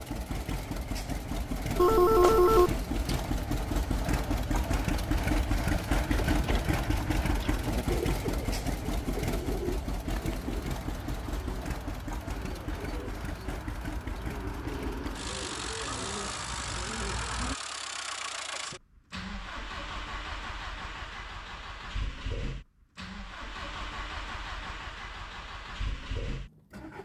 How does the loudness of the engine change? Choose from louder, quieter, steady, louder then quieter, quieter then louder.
quieter.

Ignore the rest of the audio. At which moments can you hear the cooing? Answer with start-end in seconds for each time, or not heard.
6.0-17.6.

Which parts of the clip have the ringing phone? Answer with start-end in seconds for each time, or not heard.
1.8-3.3.